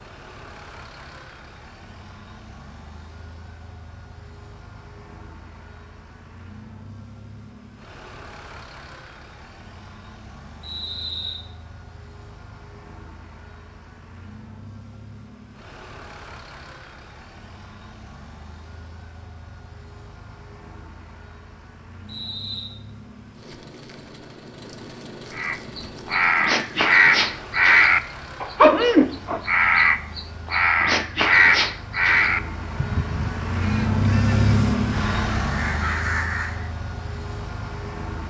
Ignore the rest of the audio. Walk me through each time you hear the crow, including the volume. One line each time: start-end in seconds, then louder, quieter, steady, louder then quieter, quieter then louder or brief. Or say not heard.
25.4-36.7 quieter.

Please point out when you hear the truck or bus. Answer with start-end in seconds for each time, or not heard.
0.0-38.2.